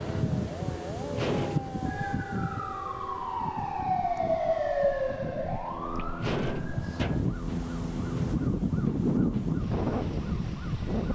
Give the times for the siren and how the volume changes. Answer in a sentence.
You can hear the siren from 0.0 to 11.0 s, getting louder then quieter.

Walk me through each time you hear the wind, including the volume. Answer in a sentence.
The wind can be heard from 0.0 to 11.1 s, getting quieter then louder.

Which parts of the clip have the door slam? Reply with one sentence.
You can hear the door slam from 1.1 to 1.9 s and from 6.2 to 7.3 s.